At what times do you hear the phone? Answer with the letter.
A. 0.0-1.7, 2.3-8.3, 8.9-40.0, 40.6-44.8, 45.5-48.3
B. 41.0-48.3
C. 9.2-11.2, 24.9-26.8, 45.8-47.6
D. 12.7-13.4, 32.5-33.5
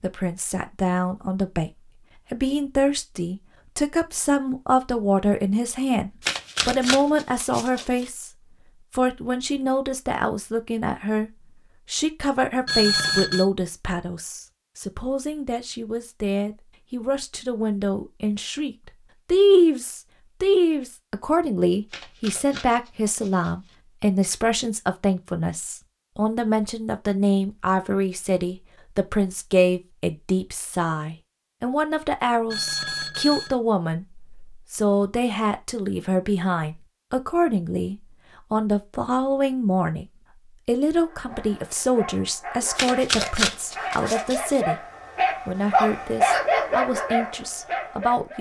D.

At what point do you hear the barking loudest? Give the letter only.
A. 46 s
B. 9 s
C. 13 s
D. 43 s
A.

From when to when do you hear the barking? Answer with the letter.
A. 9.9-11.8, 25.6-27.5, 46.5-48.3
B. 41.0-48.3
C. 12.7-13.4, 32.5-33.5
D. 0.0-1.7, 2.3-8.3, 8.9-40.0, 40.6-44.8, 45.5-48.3
B.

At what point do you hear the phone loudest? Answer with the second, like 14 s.
13 s.